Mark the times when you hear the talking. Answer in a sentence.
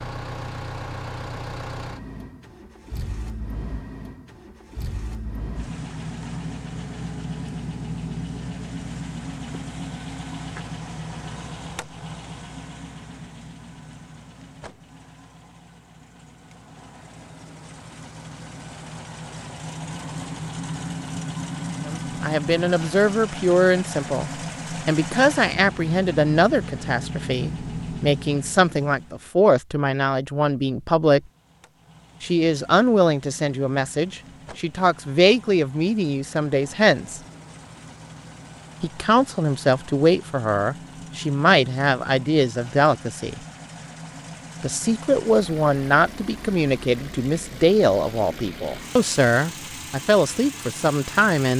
You can hear the talking from 21.9 to 31.2 s, from 32.2 to 37.2 s, from 38.8 to 43.4 s and from 44.6 to 51.5 s.